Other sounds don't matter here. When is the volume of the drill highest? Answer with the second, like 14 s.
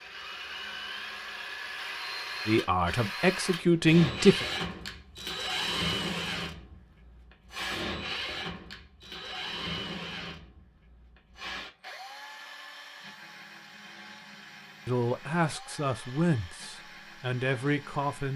6 s.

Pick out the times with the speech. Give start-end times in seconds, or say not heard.
2.5-4.5, 14.8-18.3.